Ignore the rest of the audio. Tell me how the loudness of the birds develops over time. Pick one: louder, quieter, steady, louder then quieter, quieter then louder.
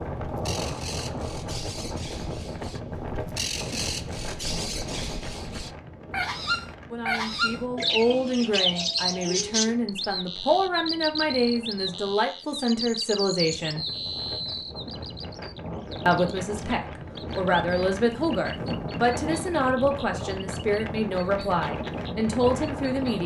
louder then quieter.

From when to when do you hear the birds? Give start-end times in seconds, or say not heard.
0.2-23.2.